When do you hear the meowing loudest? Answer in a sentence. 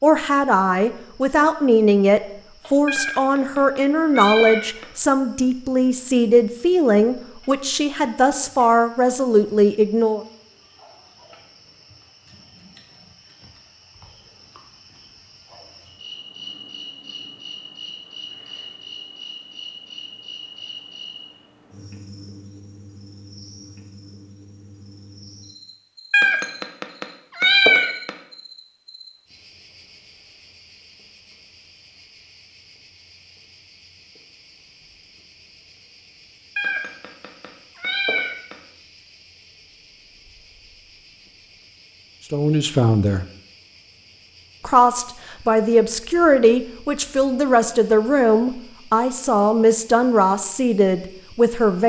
The loudest moment of the meowing is at 28 seconds.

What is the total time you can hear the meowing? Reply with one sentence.
The meowing can be heard for 6 seconds in total.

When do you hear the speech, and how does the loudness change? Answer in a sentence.
The speech can be heard from 0.0 to 10.2 s, at a steady volume; briefly from 42.3 to 43.2 s; and from 44.6 to 51.8 s, at a steady volume.